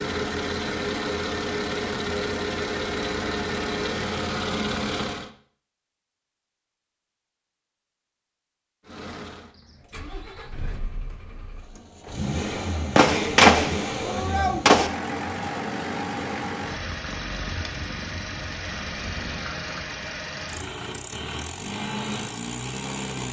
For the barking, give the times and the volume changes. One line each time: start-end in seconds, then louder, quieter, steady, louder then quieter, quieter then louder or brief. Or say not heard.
not heard.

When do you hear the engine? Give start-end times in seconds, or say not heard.
0.0-5.3, 8.8-23.2.